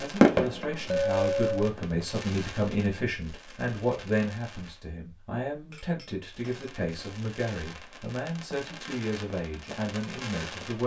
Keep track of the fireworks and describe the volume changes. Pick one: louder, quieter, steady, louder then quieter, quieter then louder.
quieter then louder.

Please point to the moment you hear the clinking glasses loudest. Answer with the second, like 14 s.
1 s.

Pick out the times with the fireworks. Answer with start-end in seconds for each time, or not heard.
0.0-4.8, 6.2-10.8.